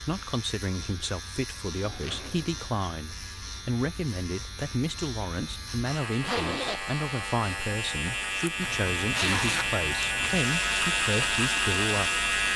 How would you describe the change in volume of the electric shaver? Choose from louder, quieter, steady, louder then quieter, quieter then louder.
louder.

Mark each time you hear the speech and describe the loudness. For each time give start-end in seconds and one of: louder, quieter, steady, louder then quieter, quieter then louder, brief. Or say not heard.
0.0-12.2 steady.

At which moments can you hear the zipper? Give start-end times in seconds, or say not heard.
1.8-2.6, 6.2-6.8, 8.6-10.4.